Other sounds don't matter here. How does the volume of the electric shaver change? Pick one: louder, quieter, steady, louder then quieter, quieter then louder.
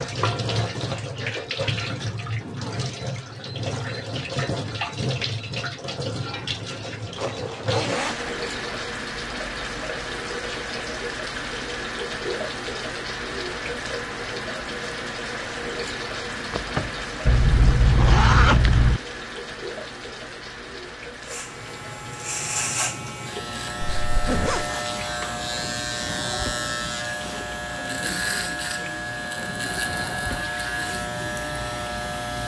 steady.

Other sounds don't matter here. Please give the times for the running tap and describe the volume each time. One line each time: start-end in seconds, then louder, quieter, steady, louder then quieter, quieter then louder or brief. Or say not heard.
0.0-32.4 quieter.